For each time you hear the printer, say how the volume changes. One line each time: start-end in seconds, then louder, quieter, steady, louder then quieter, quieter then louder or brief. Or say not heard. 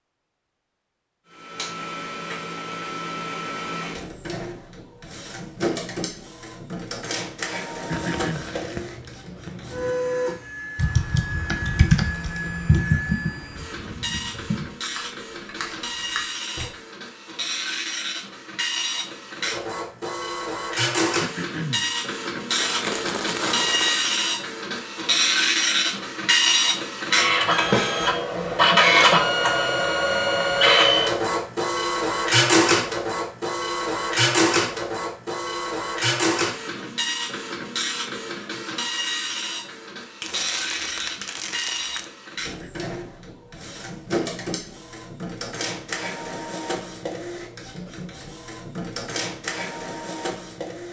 1.3-50.8 louder then quieter.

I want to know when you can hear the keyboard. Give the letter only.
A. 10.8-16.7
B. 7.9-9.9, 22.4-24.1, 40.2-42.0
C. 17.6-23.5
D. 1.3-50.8
A.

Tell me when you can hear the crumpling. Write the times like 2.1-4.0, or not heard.
7.9-9.9, 22.4-24.1, 40.2-42.0.